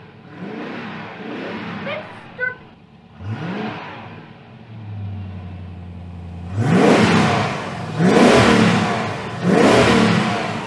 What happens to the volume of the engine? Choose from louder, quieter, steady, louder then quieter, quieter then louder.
quieter then louder.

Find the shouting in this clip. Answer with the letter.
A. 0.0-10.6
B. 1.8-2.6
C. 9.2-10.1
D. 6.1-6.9
B.